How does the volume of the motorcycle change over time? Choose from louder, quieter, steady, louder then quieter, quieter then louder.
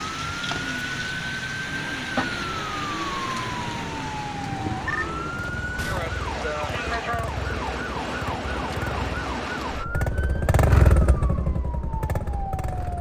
louder then quieter.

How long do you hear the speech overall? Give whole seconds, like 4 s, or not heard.
not heard.